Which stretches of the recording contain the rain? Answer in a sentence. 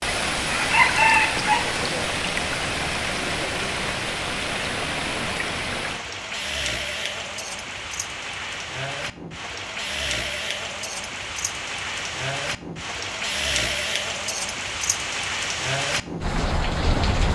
You can hear the rain from 0.0 to 17.3 s.